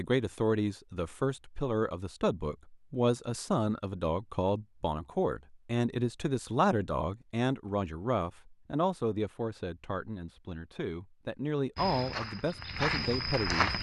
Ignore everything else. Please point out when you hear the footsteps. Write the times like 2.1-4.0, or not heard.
11.8-13.7.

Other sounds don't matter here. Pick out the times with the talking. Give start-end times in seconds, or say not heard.
0.0-13.7.